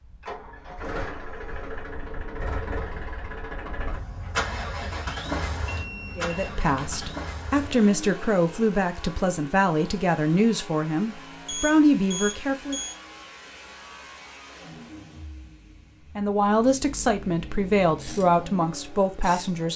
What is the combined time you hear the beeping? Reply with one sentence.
You can hear the beeping for 3 seconds altogether.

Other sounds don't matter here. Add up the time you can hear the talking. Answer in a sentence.
You can hear the talking for 10 seconds altogether.